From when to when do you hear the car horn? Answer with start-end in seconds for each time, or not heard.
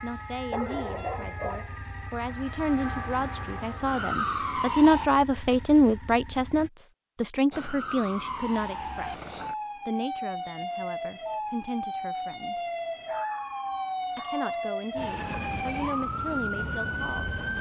not heard.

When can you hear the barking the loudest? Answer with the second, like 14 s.
1 s.